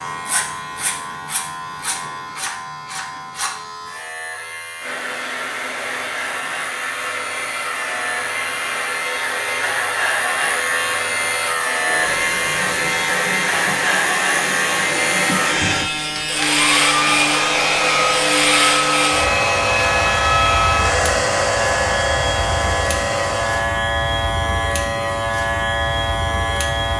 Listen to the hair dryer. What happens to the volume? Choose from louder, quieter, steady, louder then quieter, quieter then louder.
louder.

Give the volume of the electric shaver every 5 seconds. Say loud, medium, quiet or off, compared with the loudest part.
medium, medium, loud, loud, loud, loud.